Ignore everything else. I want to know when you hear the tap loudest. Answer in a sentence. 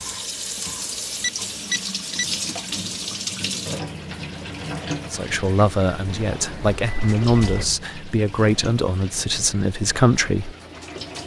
The volume of the tap peaks at 3 seconds.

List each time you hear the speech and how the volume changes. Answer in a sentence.
The speech can be heard from 5.1 to 10.5 s, at a steady volume.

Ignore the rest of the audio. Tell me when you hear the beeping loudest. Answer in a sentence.
The loudest moment of the beeping is at 2 seconds.